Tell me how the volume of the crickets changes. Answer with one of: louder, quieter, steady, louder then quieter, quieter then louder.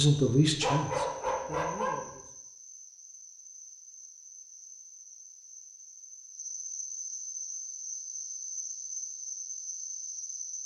louder.